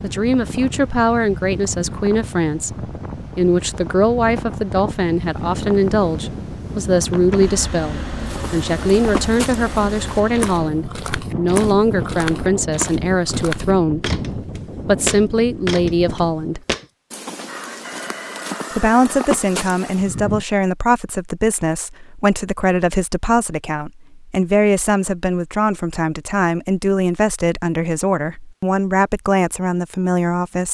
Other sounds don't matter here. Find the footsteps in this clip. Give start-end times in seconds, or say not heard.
8.2-20.1.